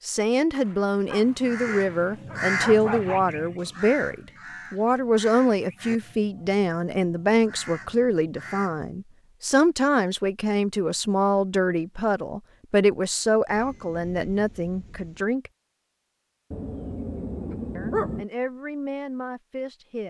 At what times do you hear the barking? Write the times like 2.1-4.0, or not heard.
0.5-3.2, 16.5-18.2.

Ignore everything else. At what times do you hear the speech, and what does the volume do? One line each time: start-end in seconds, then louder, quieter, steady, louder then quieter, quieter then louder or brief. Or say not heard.
0.0-15.5 steady
17.8-20.0 brief.